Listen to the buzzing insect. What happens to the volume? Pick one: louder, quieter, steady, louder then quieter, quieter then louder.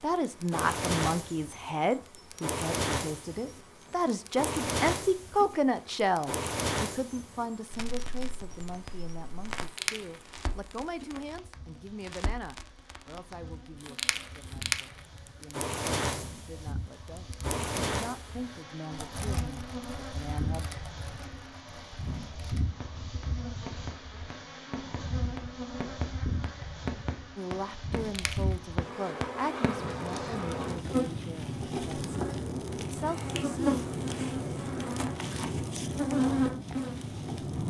louder.